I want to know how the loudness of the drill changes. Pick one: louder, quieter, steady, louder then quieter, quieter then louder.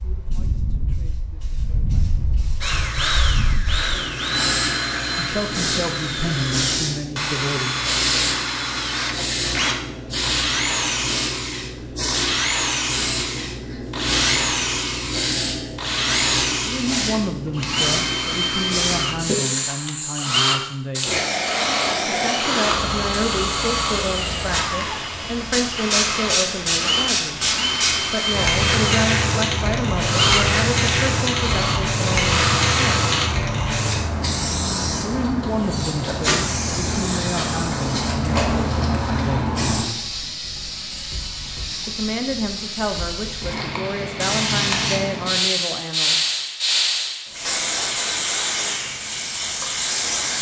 steady.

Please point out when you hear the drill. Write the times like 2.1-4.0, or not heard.
2.6-33.3.